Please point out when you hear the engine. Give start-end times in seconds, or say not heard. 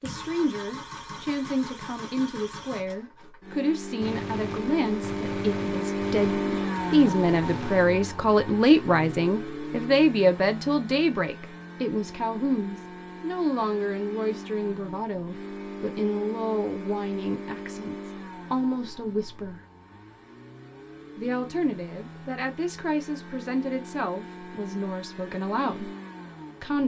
0.0-26.8.